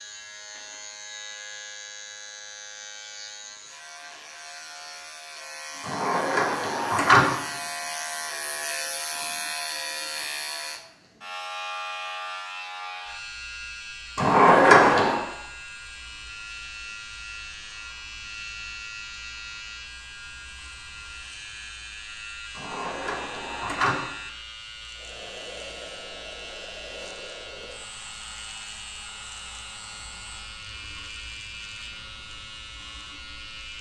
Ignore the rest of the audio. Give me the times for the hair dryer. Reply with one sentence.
You can hear the hair dryer from 24.9 to 30.6 s.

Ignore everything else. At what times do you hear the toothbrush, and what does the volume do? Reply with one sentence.
You can't hear the toothbrush here.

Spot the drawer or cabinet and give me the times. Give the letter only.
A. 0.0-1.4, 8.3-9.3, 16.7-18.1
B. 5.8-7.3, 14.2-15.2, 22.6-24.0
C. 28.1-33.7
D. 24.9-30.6
B.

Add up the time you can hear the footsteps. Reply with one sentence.
You can't hear the footsteps here.